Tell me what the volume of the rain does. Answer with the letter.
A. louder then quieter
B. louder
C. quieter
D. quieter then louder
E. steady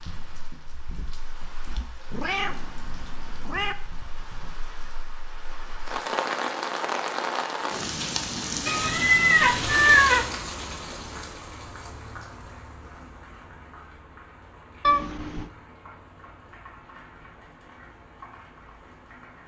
A.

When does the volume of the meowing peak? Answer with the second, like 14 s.
10 s.